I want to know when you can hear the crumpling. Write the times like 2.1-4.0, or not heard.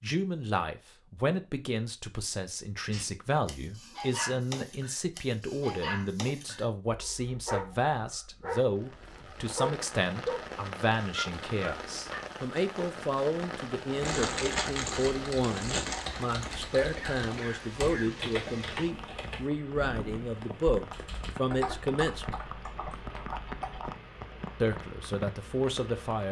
14.1-16.1.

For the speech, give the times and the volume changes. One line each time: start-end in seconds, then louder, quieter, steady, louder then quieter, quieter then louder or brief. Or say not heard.
0.0-22.4 steady
24.6-26.2 brief.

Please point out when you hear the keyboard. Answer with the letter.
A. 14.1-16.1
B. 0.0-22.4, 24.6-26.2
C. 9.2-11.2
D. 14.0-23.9
D.